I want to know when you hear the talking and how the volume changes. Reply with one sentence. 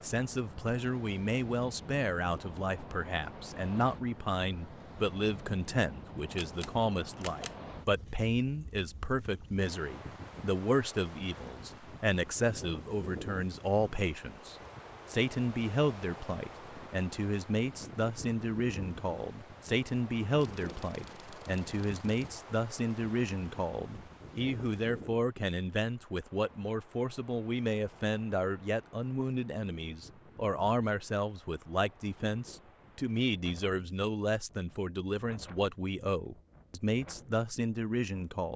You can hear the talking from 0.0 to 38.5 s, at a steady volume.